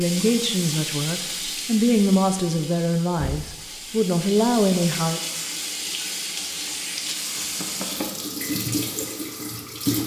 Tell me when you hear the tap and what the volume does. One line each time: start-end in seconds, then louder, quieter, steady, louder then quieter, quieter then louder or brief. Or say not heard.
0.0-10.0 quieter then louder.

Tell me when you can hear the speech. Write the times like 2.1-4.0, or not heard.
0.0-5.2.